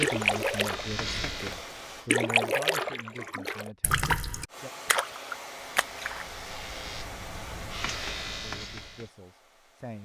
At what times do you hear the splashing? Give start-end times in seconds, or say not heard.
0.0-6.2.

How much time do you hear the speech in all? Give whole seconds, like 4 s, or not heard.
6 s.